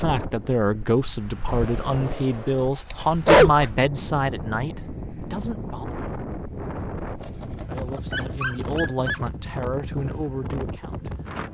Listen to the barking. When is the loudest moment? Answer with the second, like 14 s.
3 s.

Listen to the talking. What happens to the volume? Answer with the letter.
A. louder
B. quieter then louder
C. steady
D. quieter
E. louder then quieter
D.